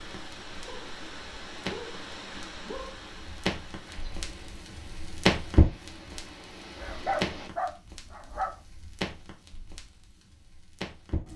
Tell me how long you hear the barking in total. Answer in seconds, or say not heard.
4 s.